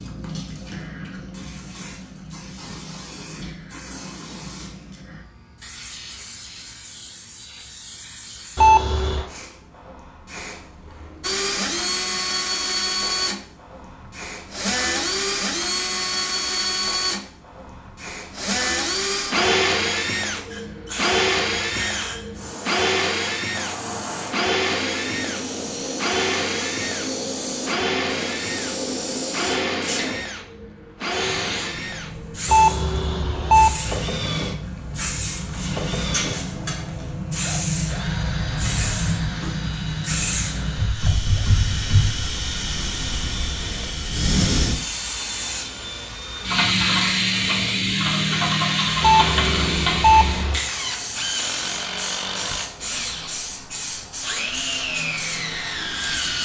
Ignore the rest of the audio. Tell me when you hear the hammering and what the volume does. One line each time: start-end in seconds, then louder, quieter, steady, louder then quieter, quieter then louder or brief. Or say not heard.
not heard.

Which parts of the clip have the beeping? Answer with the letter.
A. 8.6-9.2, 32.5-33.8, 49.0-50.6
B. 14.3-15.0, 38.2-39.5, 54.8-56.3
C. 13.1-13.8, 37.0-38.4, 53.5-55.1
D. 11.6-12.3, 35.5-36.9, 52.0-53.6
A.